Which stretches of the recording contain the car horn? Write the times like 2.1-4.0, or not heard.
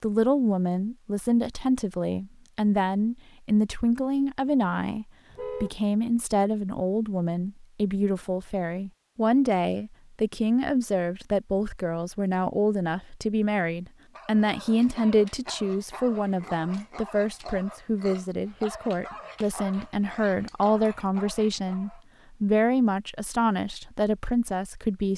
5.3-5.8.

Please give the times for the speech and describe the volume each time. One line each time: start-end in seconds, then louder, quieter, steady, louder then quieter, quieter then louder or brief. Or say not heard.
0.0-25.1 steady.